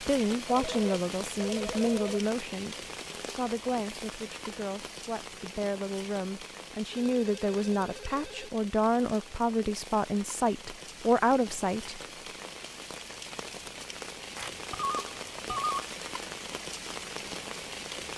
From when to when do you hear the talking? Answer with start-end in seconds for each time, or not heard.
0.0-12.0.